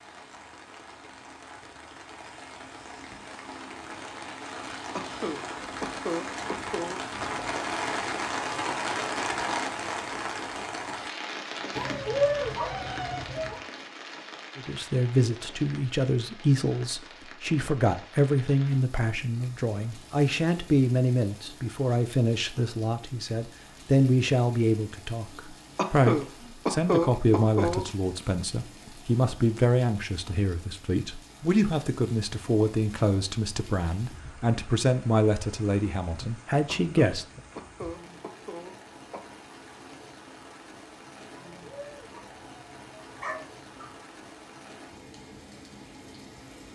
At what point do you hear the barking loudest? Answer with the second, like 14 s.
12 s.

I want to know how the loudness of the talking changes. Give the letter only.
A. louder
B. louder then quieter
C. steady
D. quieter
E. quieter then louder
C.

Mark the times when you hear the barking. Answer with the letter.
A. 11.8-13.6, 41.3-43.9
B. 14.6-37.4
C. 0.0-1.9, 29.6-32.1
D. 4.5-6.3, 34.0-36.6
A.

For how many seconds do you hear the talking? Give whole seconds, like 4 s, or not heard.
23 s.